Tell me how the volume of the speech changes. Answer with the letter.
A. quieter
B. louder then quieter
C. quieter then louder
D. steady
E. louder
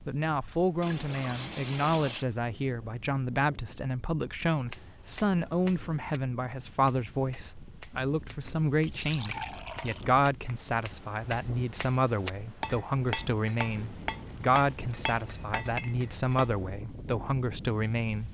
D.